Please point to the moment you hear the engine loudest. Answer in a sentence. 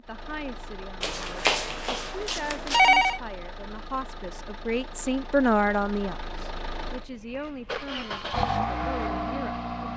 The volume of the engine peaks at 9 seconds.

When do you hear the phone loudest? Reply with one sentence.
The loudest moment of the phone is at 3 seconds.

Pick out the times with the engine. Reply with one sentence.
You can hear the engine from 0.0 to 9.9 s.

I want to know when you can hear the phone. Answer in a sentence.
The phone can be heard from 1.0 to 3.2 s.